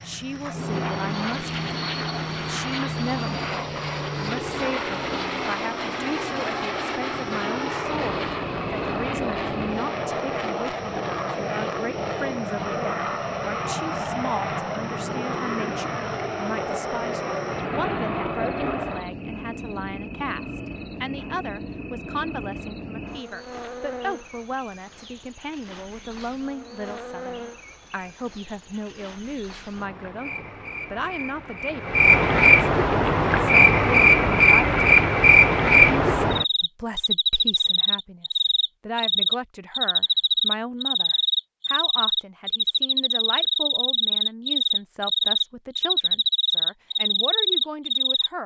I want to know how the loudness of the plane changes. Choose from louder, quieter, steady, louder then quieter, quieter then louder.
steady.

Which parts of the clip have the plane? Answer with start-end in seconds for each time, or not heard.
0.0-19.1.